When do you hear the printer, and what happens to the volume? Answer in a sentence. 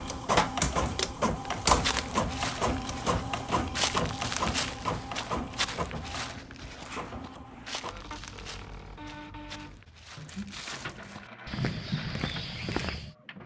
The printer can be heard from 0.0 to 13.4 s, getting quieter.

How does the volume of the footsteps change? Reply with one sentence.
The loudness of the footsteps goes down, then up.